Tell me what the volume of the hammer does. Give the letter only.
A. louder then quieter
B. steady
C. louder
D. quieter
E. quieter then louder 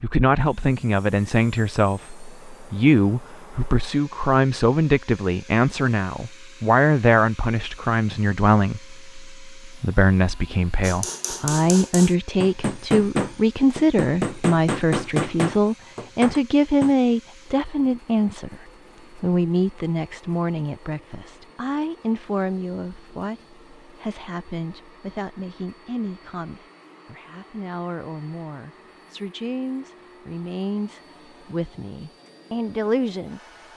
A.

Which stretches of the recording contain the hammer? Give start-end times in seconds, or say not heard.
10.8-16.9.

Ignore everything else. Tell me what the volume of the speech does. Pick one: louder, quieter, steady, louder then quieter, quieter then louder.
quieter.